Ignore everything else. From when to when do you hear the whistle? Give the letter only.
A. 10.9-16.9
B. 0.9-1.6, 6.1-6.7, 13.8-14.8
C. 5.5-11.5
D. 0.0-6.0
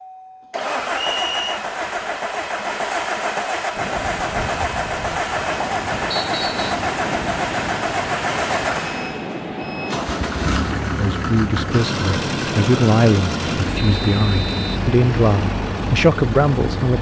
B.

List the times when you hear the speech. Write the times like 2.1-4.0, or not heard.
10.9-16.9.